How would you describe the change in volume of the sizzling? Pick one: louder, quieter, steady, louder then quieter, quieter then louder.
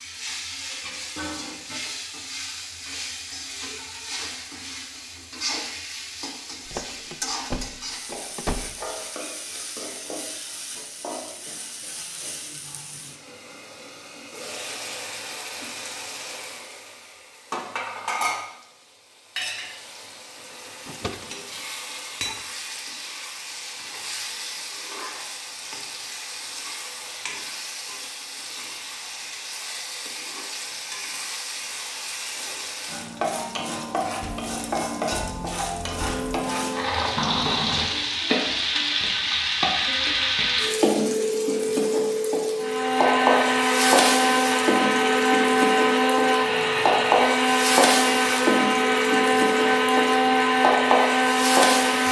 louder.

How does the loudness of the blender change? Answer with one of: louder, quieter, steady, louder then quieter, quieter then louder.
steady.